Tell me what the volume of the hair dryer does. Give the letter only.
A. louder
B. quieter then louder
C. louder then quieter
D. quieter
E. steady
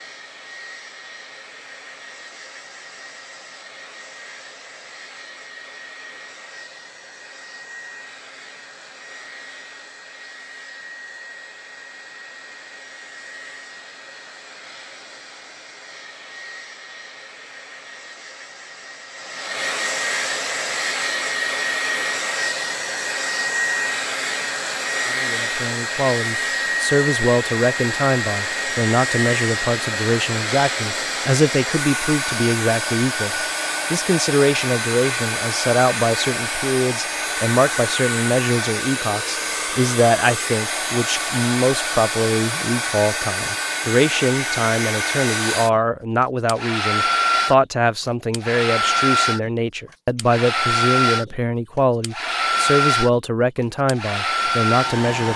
A.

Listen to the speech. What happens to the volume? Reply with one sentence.
The volume of the speech stays about the same.